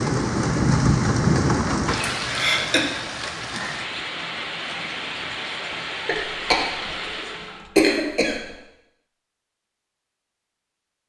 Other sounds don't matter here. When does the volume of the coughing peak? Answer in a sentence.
The loudest moment of the coughing is at 8 seconds.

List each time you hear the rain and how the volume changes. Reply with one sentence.
The rain can be heard from 0.0 to 7.7 s, getting quieter.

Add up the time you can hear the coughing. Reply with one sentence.
You can hear the coughing for 3 seconds altogether.